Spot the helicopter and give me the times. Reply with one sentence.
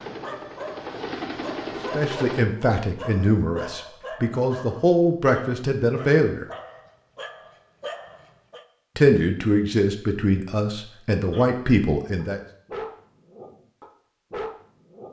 You can hear the helicopter from 0.0 to 2.5 s.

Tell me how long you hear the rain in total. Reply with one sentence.
You can't hear the rain here.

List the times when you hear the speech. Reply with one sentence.
You can hear the speech from 1.9 to 6.5 s and from 8.9 to 12.4 s.